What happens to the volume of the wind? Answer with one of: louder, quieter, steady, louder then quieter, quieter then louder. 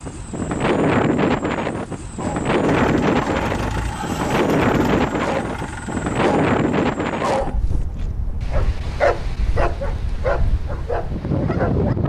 quieter.